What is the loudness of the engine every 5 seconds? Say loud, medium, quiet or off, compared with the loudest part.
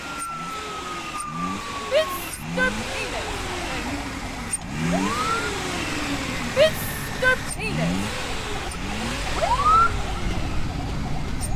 loud, loud, medium.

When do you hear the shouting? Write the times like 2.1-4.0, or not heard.
1.8-4.0, 6.5-8.0.